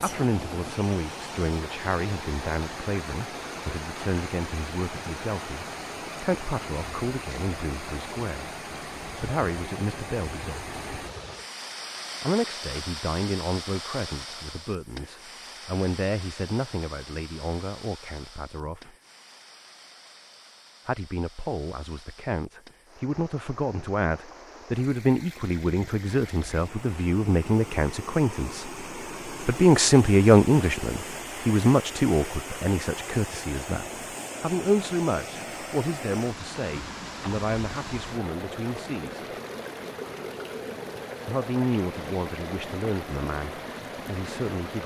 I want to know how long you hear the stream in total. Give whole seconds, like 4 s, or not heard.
45 s.